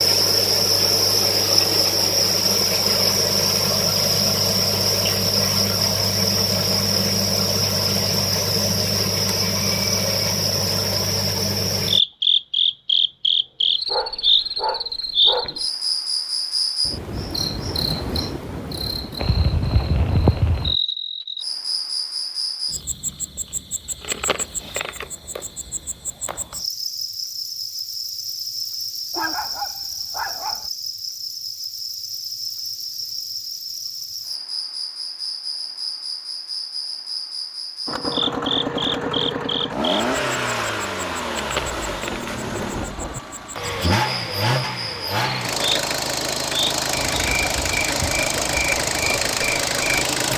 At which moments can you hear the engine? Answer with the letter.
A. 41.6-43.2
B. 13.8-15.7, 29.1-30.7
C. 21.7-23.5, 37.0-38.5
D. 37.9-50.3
D.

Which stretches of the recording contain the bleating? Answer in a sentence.
The bleating can't be heard in this clip.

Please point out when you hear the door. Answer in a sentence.
The door can't be heard in this clip.